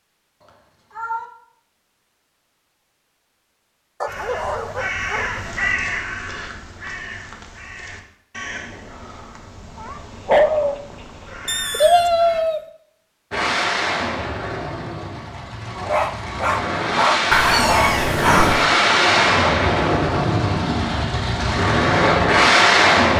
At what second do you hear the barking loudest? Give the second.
10 s.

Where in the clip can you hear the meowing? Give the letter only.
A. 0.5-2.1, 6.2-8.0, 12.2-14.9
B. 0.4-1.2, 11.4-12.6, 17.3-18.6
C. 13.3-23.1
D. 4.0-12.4
B.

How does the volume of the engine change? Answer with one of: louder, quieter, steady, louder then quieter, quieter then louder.
louder.